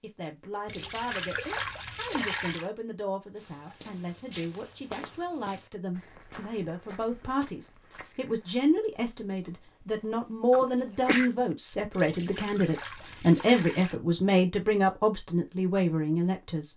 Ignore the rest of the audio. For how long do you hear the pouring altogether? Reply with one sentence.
You can hear the pouring for 4 seconds altogether.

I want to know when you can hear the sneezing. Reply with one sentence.
The sneezing can be heard from 10.5 to 11.3 s.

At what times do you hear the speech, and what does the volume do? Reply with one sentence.
The speech can be heard from 0.0 to 16.7 s, getting louder.